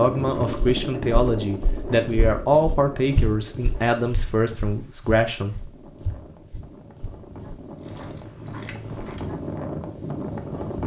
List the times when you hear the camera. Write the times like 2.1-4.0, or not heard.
7.8-9.2.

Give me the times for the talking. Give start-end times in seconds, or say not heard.
0.0-5.5.